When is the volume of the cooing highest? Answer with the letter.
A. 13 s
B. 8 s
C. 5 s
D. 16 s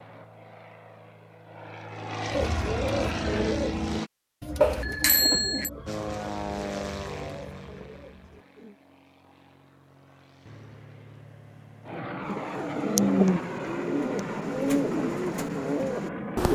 A.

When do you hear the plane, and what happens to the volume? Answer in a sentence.
The plane can be heard from 0.0 to 4.1 s, getting louder; and from 5.8 to 16.4 s, getting quieter then louder.